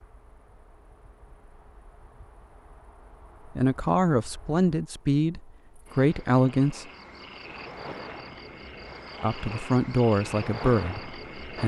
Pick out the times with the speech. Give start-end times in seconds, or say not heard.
3.5-6.8, 9.2-11.6.